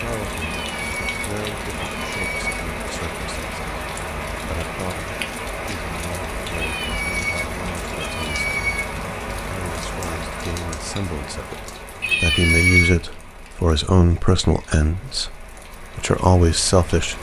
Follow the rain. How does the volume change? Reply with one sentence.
The volume of the rain goes down.